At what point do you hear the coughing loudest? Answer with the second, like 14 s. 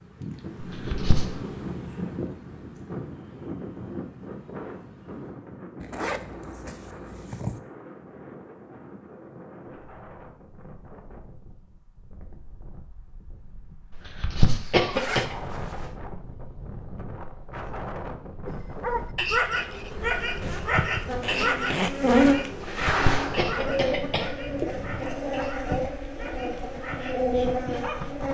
15 s.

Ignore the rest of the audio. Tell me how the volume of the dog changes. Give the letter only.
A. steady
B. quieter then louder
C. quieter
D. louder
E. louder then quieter
C.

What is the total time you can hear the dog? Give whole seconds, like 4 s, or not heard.
10 s.